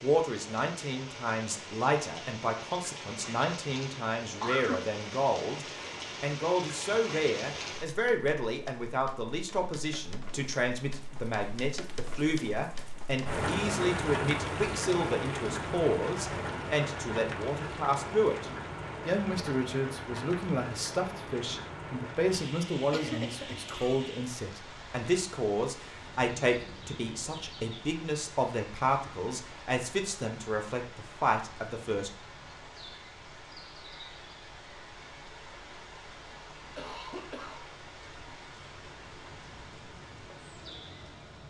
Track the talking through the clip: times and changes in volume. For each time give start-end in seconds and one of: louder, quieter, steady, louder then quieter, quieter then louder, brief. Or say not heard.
0.0-32.1 steady.